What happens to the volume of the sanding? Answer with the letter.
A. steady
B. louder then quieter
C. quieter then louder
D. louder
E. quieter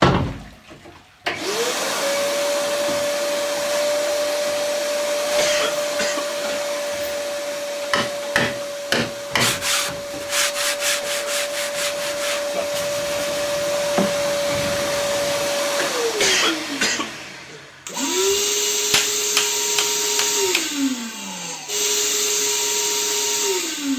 E.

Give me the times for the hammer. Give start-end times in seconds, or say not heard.
7.5-9.6, 18.9-20.7.